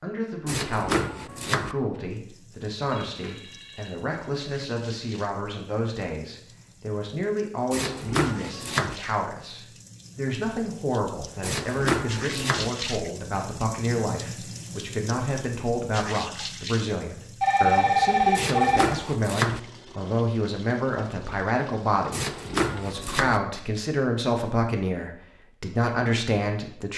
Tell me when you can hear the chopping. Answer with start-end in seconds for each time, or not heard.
0.5-1.8, 7.7-9.0, 11.4-12.7, 18.4-19.6, 22.1-23.4.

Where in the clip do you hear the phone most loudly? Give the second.
18 s.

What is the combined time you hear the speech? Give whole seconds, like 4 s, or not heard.
27 s.